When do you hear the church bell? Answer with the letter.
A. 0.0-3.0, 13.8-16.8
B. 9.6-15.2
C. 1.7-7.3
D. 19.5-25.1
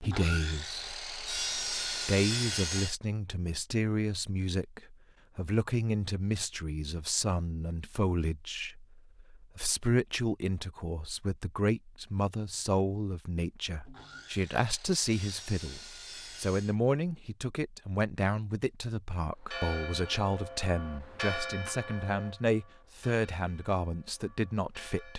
D.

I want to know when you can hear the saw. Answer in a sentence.
You can hear the saw from 0.0 to 3.0 s and from 13.8 to 16.8 s.